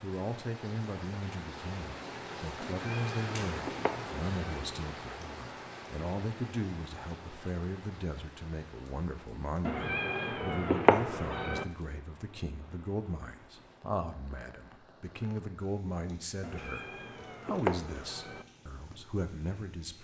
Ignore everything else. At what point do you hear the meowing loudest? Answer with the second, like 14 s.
11 s.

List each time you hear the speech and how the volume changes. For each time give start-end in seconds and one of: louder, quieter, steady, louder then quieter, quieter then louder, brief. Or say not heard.
0.0-16.9 steady
17.4-19.9 brief.